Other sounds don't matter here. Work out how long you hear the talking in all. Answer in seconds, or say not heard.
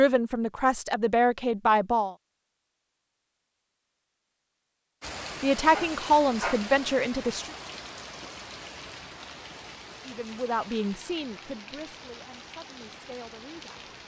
8 s.